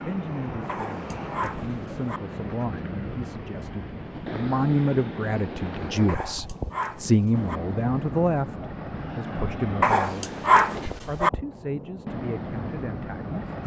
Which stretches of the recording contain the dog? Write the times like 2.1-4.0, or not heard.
0.7-2.2, 6.0-7.6, 9.8-11.3.